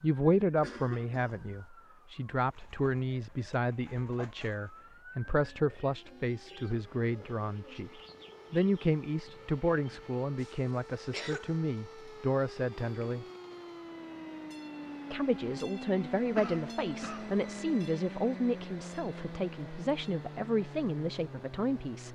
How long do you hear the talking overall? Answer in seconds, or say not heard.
20 s.